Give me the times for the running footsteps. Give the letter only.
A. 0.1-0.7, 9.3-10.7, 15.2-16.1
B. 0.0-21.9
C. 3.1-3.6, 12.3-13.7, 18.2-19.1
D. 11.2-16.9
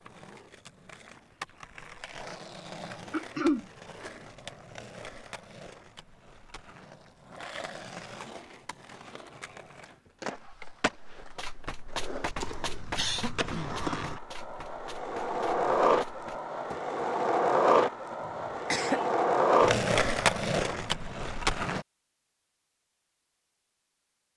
D.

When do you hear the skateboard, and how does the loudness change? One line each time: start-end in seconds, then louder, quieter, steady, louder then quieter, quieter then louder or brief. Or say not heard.
0.0-21.9 louder.